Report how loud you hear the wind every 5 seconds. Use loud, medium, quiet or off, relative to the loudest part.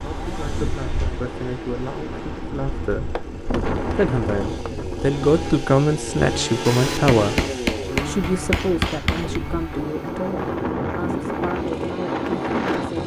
medium, medium, loud.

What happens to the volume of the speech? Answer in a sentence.
The volume of the speech goes up, then down.